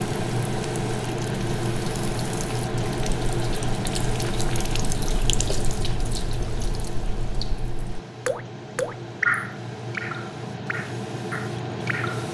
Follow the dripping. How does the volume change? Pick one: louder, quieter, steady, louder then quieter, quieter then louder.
louder then quieter.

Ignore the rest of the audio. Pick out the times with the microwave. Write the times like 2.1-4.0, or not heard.
not heard.